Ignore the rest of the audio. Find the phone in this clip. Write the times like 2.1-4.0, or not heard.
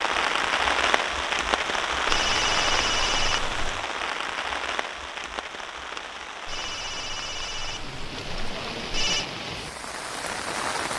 2.0-3.9, 6.5-9.2.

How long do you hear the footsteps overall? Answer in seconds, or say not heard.
not heard.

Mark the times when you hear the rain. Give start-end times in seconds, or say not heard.
0.0-10.9.